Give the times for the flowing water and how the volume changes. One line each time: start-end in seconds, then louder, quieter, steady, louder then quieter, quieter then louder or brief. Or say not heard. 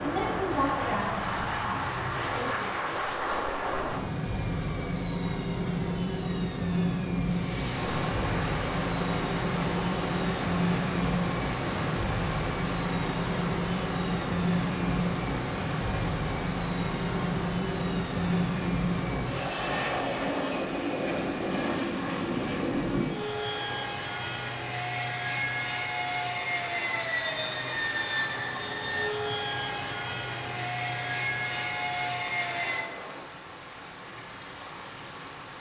7.2-35.5 quieter.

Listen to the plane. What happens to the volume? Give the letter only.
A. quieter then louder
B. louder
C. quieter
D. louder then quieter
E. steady
E.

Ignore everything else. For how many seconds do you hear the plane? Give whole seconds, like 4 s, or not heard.
33 s.